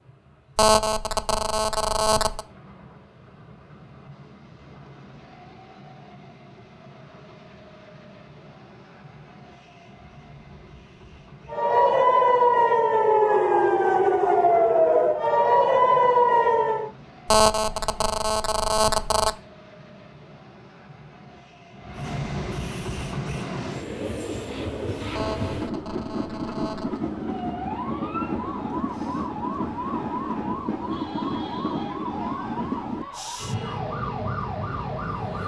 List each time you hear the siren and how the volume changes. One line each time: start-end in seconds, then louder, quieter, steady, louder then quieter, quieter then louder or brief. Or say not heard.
11.4-16.9 steady
27.1-35.4 steady.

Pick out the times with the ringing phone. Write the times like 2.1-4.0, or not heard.
0.6-2.5, 17.2-19.4, 25.1-27.0.